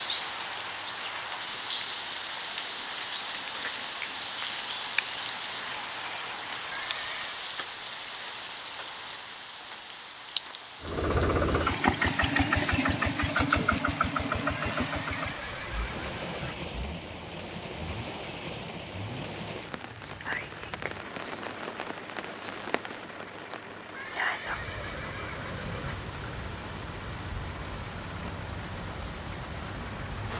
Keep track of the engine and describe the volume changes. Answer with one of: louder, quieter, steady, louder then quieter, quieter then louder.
quieter.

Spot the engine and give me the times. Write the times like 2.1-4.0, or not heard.
10.8-30.3.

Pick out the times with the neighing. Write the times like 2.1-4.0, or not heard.
6.7-7.5, 14.8-16.6, 23.9-25.9.